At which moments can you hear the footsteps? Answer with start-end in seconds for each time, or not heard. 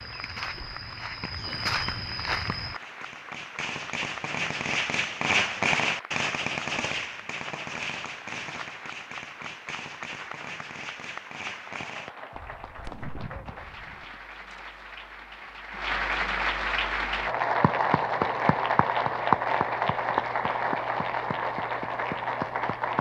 0.0-2.8.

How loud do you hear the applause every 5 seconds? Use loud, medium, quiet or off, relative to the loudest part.
quiet, quiet, quiet, loud, loud.